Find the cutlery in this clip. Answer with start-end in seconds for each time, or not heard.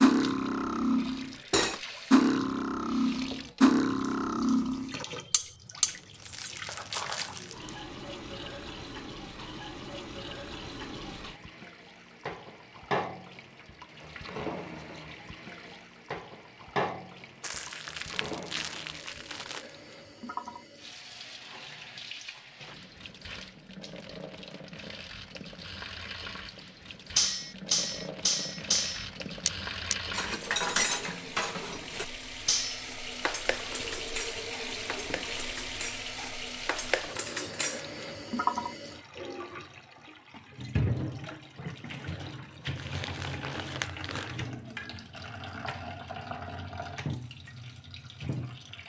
0.0-7.3, 27.1-37.9.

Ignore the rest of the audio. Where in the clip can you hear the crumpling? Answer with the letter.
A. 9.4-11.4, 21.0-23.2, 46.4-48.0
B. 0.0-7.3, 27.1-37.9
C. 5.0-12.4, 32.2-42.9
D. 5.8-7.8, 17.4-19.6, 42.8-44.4
D.